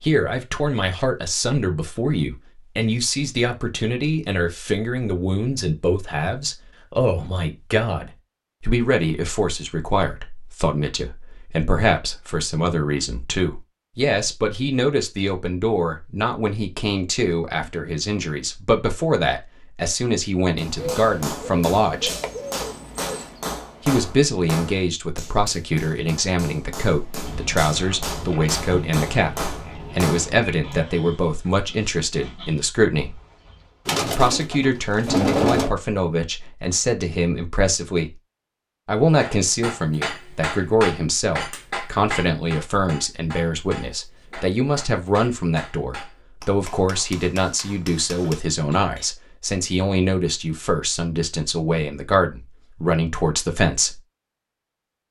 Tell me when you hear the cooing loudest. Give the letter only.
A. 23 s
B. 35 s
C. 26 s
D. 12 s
B.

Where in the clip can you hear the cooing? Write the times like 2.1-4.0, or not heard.
20.8-23.4, 33.9-35.8.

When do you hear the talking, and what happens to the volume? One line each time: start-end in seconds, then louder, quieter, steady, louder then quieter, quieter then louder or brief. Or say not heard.
0.0-22.1 steady
23.9-33.1 steady
34.0-38.1 steady
38.9-54.0 steady.